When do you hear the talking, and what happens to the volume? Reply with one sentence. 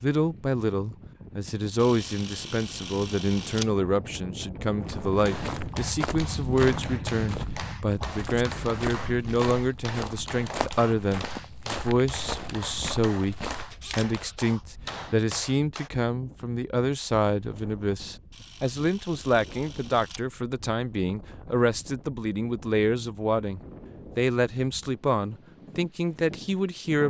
You can hear the talking from 0.0 to 27.0 s, at a steady volume.